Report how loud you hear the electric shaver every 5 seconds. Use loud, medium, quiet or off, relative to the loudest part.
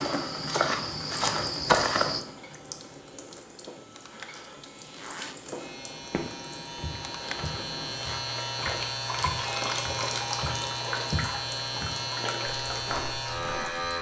quiet, loud, loud.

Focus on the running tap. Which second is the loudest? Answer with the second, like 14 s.
10 s.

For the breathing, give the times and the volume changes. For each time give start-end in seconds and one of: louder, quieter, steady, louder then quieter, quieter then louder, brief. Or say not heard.
not heard.